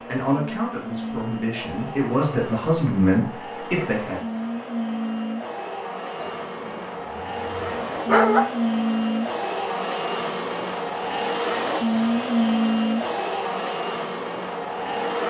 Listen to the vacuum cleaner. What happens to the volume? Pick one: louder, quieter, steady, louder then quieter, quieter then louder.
louder.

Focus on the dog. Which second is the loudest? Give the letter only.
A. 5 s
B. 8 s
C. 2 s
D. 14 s
B.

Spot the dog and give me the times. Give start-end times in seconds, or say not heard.
6.2-8.4.